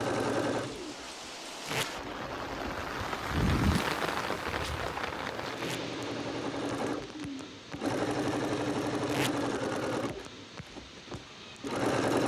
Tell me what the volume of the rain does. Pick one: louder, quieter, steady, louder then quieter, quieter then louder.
louder then quieter.